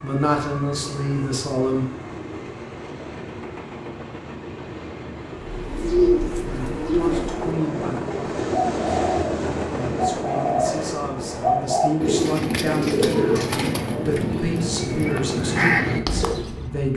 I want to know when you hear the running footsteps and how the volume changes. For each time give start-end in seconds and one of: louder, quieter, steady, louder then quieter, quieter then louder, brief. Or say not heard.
not heard.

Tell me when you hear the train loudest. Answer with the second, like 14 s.
9 s.